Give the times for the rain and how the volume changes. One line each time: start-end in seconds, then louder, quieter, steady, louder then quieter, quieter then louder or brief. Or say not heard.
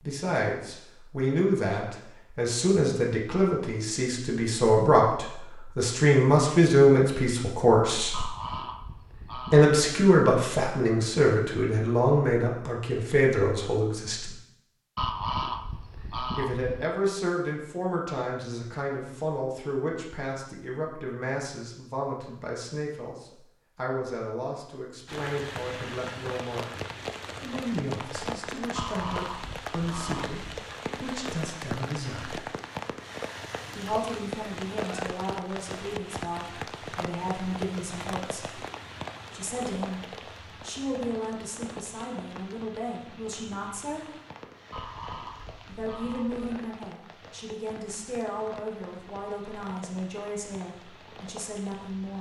25.1-52.1 quieter.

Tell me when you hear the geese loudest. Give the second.
15 s.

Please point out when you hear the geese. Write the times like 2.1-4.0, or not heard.
8.1-9.7, 14.9-16.8, 28.8-30.4, 44.7-46.5.